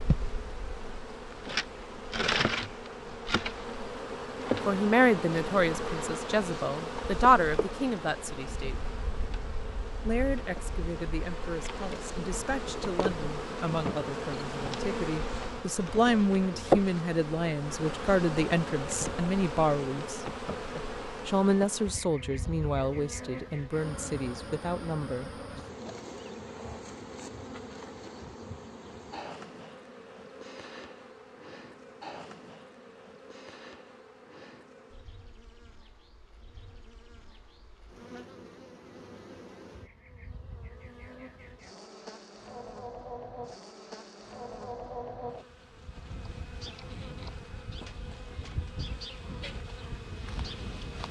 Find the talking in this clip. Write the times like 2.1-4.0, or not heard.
4.7-8.8, 10.0-20.2, 21.2-25.3.